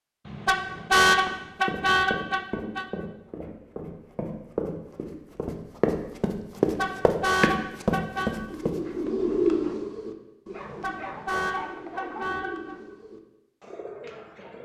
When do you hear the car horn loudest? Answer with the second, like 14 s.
1 s.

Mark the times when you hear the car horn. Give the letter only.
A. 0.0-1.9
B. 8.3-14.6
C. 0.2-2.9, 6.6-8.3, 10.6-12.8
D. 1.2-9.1
C.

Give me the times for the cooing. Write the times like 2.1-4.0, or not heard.
8.3-14.6.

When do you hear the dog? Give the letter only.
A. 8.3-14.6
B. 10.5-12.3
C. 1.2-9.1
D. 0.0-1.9
B.